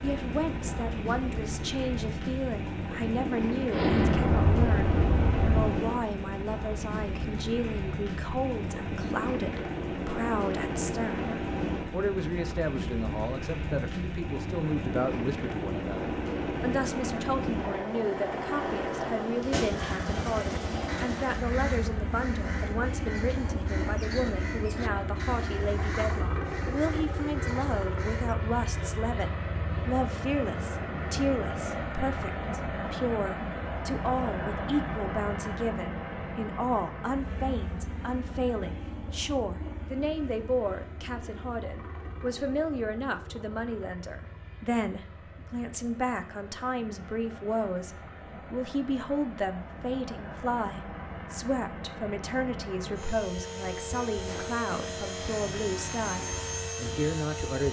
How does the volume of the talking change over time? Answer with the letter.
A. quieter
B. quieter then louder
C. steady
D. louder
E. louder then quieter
C.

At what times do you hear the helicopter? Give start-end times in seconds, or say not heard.
0.0-57.6.